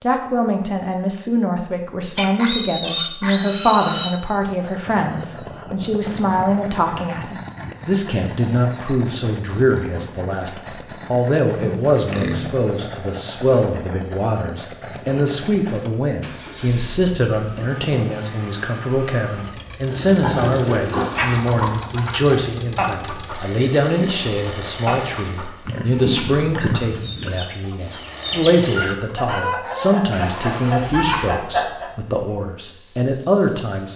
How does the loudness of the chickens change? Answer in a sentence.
The loudness of the chickens goes down, then up.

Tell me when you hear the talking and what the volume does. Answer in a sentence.
You can hear the talking from 0.0 to 33.9 s, at a steady volume.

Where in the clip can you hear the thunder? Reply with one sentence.
The thunder can't be heard in this clip.